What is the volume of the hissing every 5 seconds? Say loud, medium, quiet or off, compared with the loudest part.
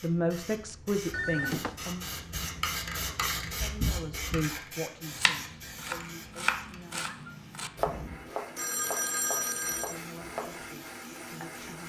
loud, medium, quiet.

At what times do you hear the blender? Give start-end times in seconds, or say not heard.
6.1-11.8.